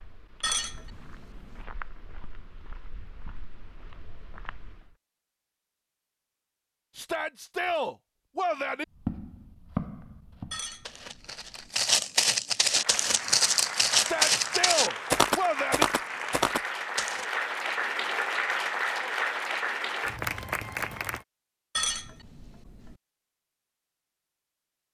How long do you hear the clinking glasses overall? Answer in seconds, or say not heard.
4 s.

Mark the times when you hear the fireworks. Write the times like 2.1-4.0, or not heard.
not heard.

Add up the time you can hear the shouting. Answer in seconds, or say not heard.
4 s.